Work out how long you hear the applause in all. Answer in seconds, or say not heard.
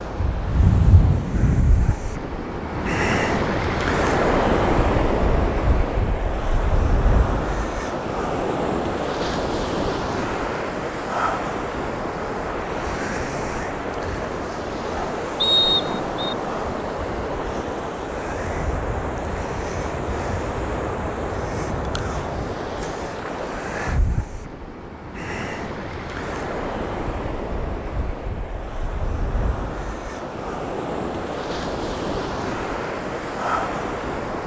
not heard.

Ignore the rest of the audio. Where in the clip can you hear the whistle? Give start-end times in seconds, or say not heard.
15.4-16.4.